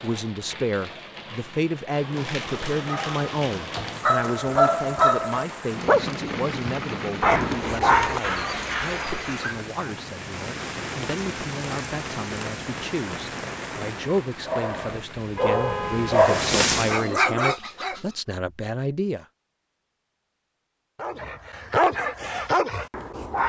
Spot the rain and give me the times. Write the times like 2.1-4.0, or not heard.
0.0-17.3.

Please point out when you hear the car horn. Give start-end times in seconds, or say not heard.
15.2-16.3.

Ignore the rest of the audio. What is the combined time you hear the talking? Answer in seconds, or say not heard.
19 s.